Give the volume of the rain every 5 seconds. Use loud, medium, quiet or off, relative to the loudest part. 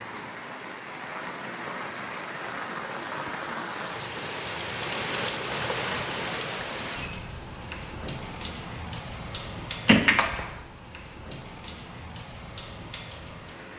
loud, loud, medium.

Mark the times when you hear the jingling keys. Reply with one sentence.
The jingling keys can be heard from 9.8 to 10.6 s.